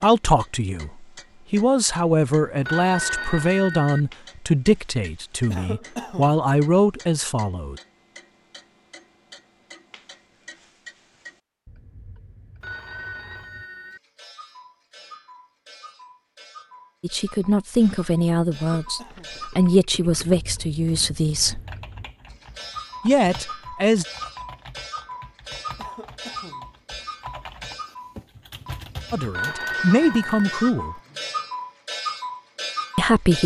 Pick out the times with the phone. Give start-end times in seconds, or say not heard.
2.6-4.0, 12.6-14.0, 29.3-30.7.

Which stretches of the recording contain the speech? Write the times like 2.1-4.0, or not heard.
0.0-7.8, 17.0-21.6, 23.1-24.1, 29.1-30.9, 33.0-33.4.